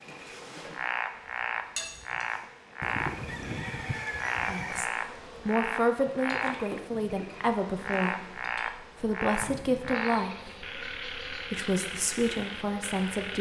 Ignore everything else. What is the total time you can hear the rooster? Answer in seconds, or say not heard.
2 s.